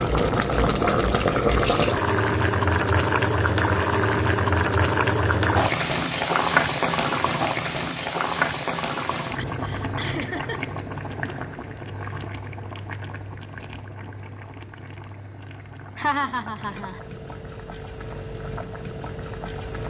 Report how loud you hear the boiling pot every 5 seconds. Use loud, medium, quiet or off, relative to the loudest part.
loud, loud, quiet, quiet.